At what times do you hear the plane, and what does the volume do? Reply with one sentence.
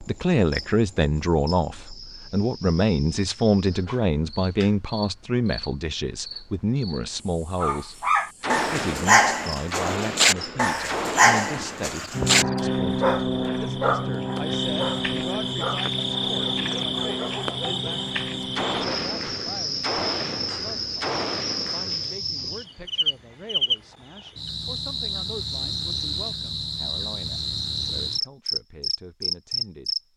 You can hear the plane from 12.1 to 18.9 s, getting quieter.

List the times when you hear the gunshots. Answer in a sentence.
The gunshots can be heard from 8.4 to 11.9 s and from 18.6 to 22.1 s.